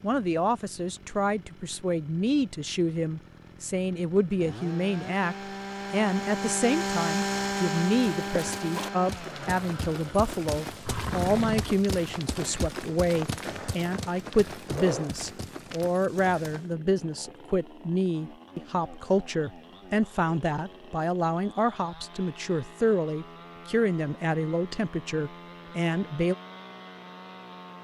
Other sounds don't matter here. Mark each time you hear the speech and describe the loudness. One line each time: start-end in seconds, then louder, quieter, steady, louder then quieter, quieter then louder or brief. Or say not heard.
0.0-26.4 steady.